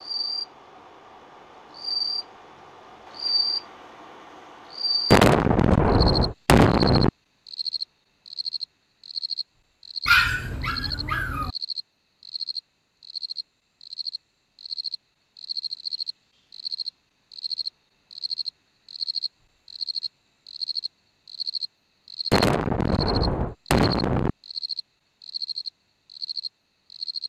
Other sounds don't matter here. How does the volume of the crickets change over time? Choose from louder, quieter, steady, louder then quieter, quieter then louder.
steady.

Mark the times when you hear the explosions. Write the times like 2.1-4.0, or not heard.
5.1-7.1, 22.3-24.3.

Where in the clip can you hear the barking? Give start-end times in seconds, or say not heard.
10.1-11.5.